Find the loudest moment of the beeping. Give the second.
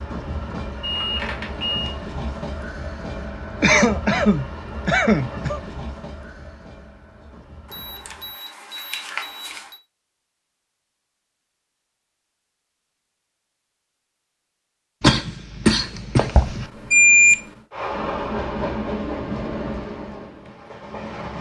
17 s.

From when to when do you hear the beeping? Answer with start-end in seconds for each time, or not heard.
0.8-1.9, 7.7-9.8, 16.4-17.4.